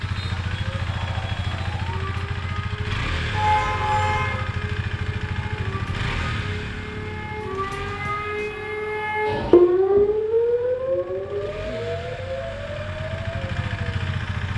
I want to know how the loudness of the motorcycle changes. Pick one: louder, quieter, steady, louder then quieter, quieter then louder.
quieter then louder.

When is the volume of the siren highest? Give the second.
10 s.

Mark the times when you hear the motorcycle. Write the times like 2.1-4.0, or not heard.
0.0-14.5.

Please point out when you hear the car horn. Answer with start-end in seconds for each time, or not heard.
3.3-4.3.